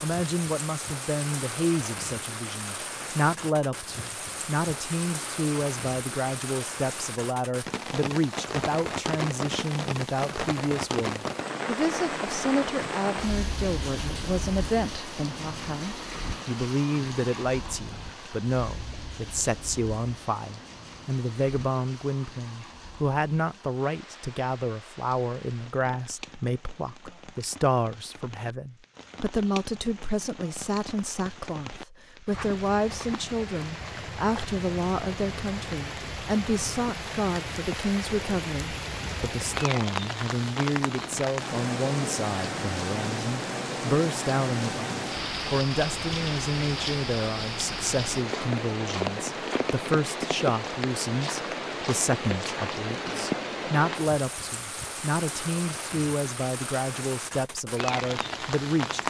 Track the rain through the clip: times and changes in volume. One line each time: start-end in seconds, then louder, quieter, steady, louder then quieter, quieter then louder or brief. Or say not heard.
0.0-59.0 quieter then louder.